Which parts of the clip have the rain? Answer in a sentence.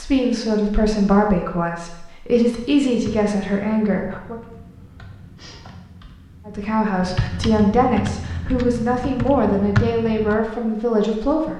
You can't hear the rain here.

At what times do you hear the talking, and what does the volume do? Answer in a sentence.
You can hear the talking from 0.0 to 4.4 s, at a steady volume; and from 6.5 to 11.5 s, at a steady volume.